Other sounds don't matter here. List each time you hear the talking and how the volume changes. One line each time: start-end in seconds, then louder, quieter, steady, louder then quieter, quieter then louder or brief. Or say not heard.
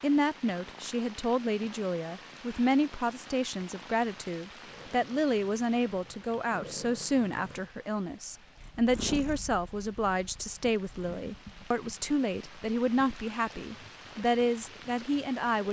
0.0-15.6 steady.